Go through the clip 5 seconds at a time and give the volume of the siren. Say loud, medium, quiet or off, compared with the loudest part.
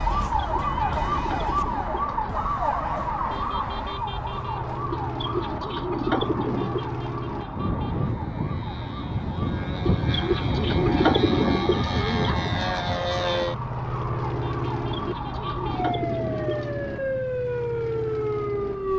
loud, medium, medium, loud.